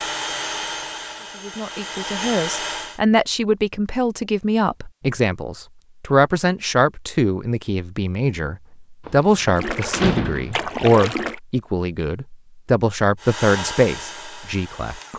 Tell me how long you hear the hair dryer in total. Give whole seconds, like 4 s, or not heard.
5 s.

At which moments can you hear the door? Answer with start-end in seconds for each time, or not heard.
9.1-11.3.